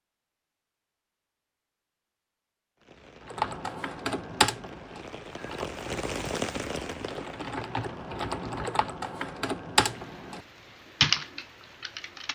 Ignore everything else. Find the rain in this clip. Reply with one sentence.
You can hear the rain from 2.8 to 12.3 s.